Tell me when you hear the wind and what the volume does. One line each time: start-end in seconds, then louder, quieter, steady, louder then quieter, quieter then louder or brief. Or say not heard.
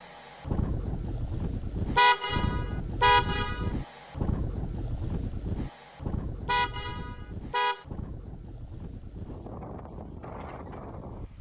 0.0-11.3 quieter.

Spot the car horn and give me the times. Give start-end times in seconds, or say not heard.
1.9-3.7, 6.5-7.8.